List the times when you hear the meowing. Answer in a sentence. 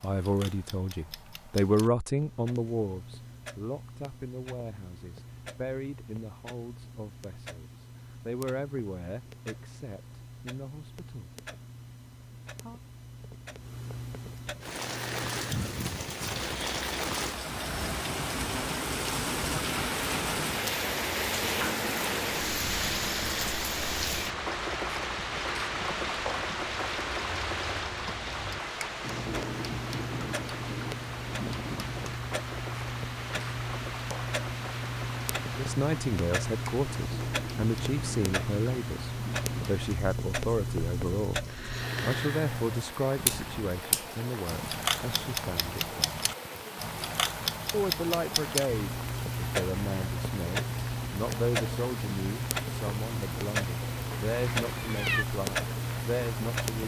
You can hear the meowing from 54.2 to 55.2 s.